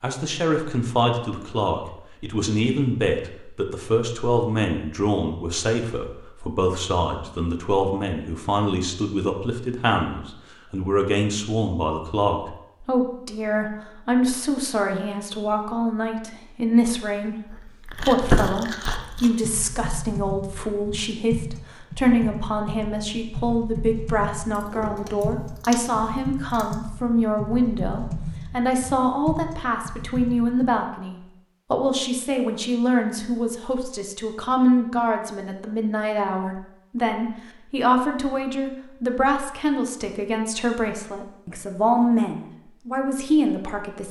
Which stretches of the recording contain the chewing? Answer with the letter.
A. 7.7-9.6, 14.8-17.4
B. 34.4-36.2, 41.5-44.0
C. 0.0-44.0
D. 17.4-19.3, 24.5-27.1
D.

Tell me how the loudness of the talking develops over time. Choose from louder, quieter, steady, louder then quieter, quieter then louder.
steady.